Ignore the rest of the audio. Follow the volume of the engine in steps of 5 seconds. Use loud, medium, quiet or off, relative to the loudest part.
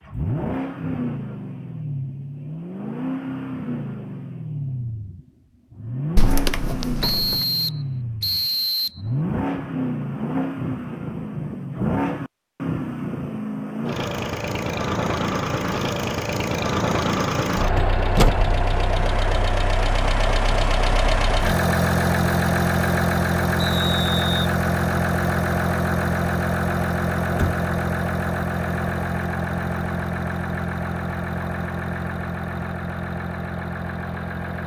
medium, medium, medium, loud, loud, loud, medium.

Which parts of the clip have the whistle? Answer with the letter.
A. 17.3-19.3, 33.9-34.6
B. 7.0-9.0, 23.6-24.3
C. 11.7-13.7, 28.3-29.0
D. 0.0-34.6
B.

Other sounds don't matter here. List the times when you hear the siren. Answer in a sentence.
You can't hear the siren here.